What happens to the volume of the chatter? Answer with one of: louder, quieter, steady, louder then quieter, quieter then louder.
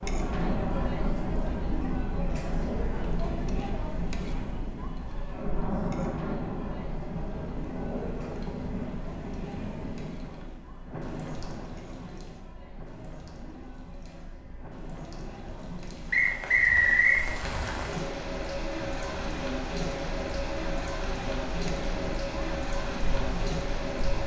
quieter then louder.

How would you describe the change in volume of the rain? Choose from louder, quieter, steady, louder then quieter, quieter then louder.
quieter then louder.